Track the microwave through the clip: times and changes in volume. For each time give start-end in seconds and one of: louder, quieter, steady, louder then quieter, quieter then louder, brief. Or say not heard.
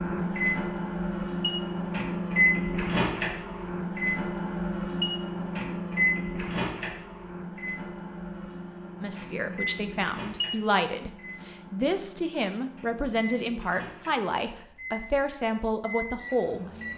0.0-16.9 quieter.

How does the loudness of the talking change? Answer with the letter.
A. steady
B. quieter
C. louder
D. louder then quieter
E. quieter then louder
A.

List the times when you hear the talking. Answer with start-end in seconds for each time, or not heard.
9.0-16.9.